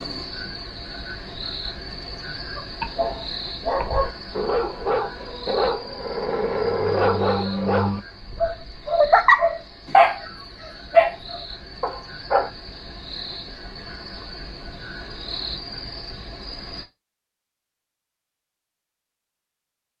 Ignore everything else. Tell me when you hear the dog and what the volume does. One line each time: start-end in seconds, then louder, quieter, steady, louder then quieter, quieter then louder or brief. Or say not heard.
2.5-12.5 louder.